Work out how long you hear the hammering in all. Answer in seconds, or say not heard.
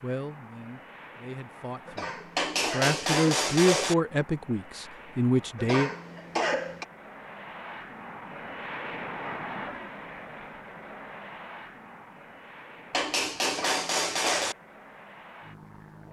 3 s.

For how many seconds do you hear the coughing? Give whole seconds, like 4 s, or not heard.
4 s.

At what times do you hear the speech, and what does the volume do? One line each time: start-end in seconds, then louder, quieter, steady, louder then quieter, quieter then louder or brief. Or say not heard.
0.0-5.9 louder.